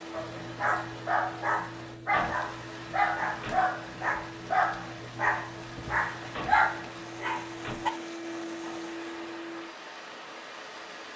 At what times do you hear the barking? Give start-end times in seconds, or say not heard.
0.1-7.9.